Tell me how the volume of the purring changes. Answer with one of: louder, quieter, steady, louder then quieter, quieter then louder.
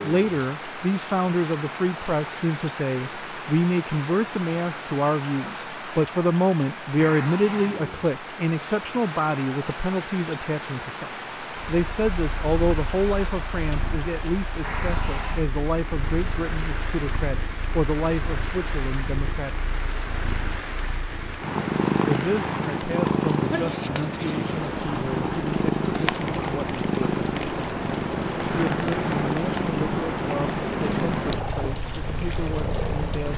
louder.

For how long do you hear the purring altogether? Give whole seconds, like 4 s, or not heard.
22 s.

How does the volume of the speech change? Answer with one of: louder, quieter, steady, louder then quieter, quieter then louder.
quieter.